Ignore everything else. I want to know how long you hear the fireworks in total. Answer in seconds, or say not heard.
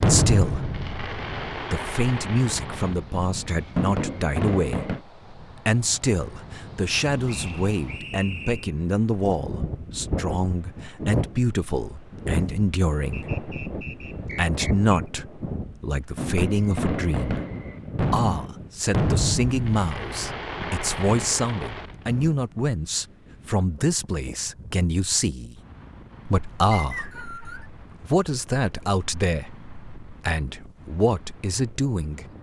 11 s.